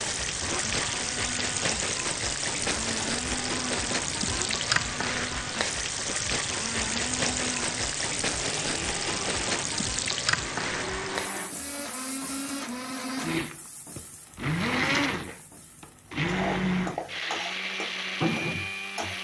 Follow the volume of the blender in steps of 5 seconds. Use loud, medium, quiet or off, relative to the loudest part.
medium, medium, loud, loud.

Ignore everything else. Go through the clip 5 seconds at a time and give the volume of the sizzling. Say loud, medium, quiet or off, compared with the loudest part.
loud, loud, medium, medium.